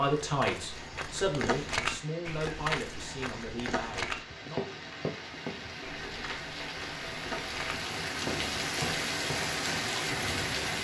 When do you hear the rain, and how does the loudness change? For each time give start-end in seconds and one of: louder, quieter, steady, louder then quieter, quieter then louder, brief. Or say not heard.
0.0-10.7 louder.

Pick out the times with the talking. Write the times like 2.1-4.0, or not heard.
0.0-4.8.